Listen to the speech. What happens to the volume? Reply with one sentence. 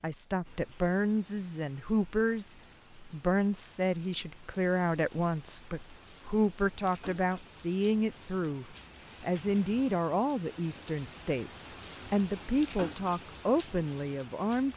The loudness of the speech stays about the same.